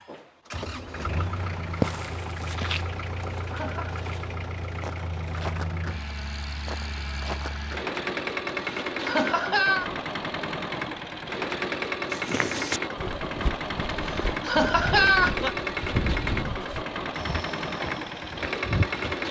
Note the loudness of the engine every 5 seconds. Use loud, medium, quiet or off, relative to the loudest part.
medium, loud, loud, loud.